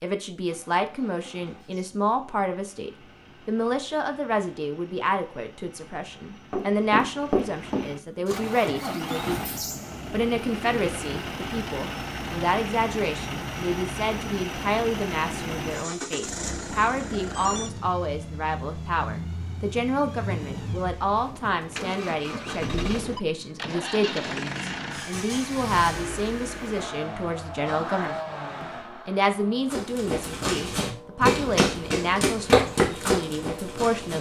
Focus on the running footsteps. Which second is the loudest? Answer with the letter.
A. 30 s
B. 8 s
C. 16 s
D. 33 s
D.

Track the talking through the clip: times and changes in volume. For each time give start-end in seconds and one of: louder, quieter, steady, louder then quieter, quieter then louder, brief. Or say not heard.
0.0-34.1 steady.